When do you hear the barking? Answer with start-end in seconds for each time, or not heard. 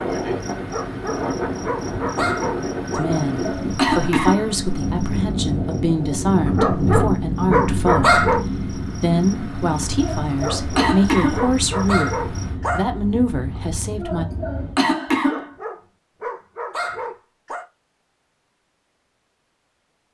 0.6-3.0, 6.5-8.4, 10.3-12.9, 15.2-17.6.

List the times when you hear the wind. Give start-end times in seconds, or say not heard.
0.0-14.8.